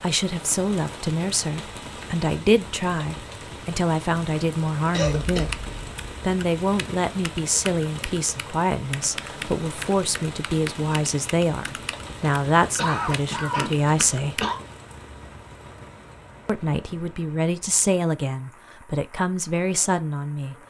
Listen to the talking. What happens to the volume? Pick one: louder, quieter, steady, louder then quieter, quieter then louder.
steady.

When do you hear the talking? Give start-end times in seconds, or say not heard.
0.0-14.4, 16.4-20.6.